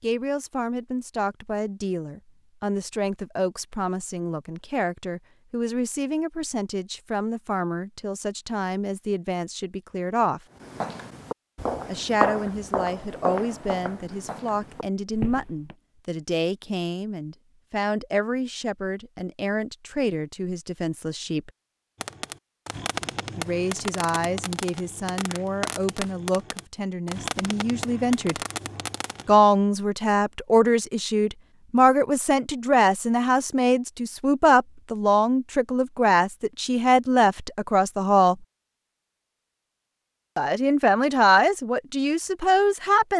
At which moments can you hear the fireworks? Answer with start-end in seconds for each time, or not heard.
21.9-29.4.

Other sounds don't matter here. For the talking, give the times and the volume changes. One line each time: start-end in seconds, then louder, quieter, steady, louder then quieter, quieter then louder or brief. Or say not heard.
0.0-10.4 steady
11.8-21.5 steady
23.4-28.4 steady
29.2-38.4 steady
40.4-43.1 brief.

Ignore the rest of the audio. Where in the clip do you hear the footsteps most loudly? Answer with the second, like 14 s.
12 s.